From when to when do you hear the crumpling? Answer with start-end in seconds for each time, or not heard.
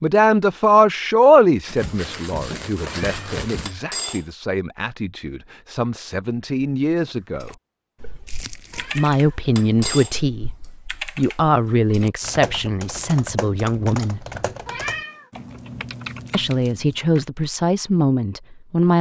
1.6-3.8, 8.2-9.1, 15.3-16.9.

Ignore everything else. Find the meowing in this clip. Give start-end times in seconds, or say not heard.
3.0-4.2, 8.8-10.1, 14.7-15.3.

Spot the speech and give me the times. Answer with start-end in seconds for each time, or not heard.
0.0-7.5, 8.9-14.2, 16.3-18.9.